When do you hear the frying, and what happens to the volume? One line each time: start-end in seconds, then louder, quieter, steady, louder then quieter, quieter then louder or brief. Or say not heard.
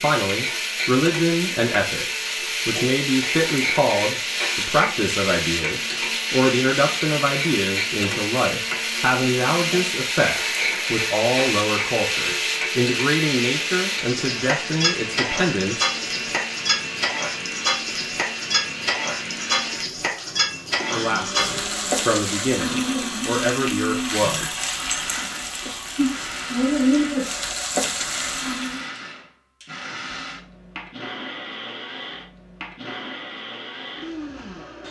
0.0-28.9 steady.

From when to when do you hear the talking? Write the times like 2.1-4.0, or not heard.
0.0-15.9, 20.9-24.6.